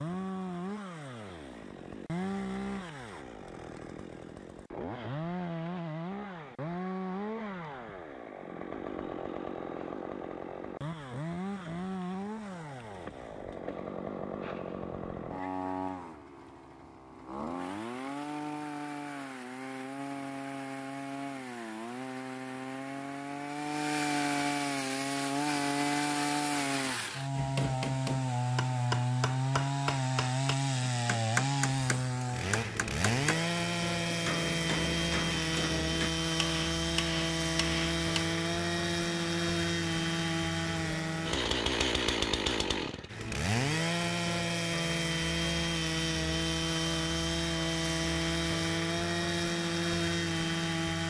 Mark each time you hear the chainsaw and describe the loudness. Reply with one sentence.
You can hear the chainsaw from 0.0 to 51.0 s, getting louder.